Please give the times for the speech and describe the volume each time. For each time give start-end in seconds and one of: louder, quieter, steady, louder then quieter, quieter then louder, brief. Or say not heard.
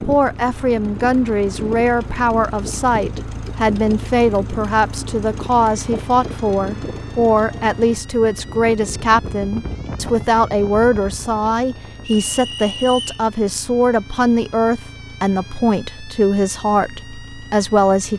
0.0-18.1 steady.